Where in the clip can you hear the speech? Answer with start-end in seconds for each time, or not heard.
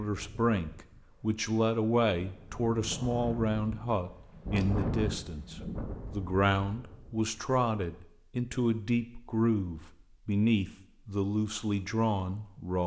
0.0-12.8.